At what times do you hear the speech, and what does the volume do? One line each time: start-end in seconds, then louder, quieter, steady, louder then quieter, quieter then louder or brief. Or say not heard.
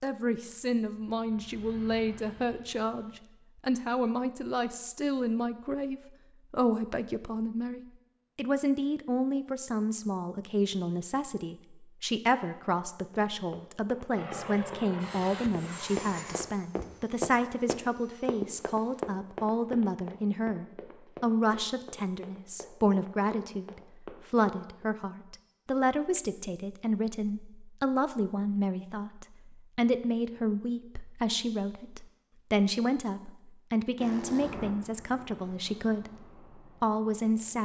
0.0-37.5 steady.